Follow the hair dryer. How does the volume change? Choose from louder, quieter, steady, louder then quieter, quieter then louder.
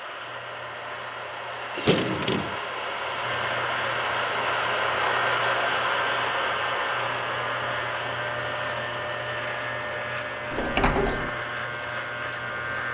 louder then quieter.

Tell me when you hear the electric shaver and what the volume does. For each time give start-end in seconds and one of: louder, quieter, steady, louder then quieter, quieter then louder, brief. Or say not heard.
0.0-12.8 louder.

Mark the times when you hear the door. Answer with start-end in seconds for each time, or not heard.
1.8-2.5, 10.5-11.3.